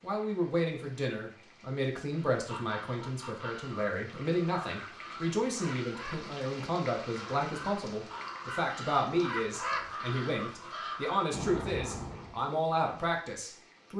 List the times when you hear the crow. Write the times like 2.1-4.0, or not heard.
2.3-12.4.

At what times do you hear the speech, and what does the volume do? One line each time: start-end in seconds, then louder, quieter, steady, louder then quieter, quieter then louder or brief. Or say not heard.
0.0-13.9 steady.